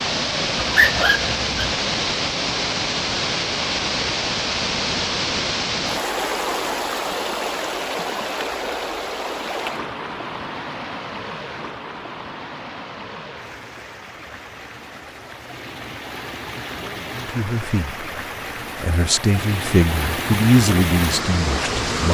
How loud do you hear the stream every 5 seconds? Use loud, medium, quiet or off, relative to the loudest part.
loud, loud, medium, medium, loud.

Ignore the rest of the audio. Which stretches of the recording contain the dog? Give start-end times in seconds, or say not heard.
0.6-1.8.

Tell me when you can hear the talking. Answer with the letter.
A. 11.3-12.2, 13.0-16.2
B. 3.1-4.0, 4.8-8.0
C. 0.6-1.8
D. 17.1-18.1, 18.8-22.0
D.